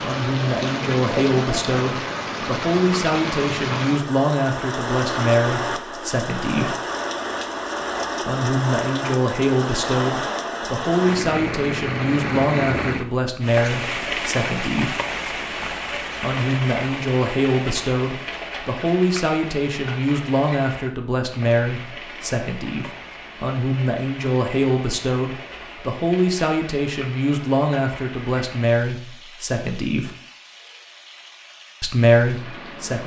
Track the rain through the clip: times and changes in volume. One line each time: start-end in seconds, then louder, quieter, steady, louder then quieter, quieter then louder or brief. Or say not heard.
0.0-33.0 quieter.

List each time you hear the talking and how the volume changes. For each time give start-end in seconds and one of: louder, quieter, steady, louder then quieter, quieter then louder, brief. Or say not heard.
0.0-6.8 steady
8.2-14.9 steady
16.2-30.1 steady
31.8-33.0 brief.